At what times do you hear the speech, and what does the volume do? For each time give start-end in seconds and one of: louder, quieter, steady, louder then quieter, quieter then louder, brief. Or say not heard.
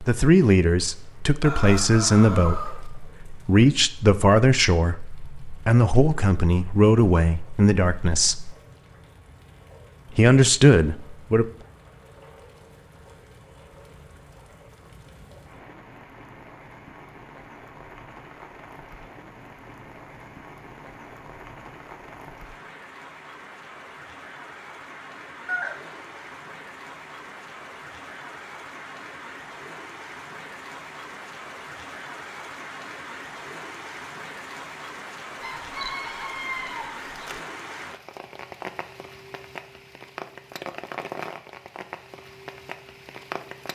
0.0-8.6 steady
10.1-11.5 brief.